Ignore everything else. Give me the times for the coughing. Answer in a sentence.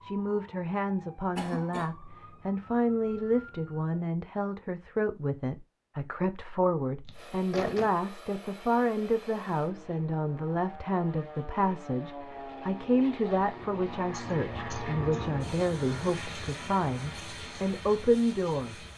You can hear the coughing from 1.4 to 1.9 s, from 7.0 to 7.9 s and from 14.1 to 15.2 s.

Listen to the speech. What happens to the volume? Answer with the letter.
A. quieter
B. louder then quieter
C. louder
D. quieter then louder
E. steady
E.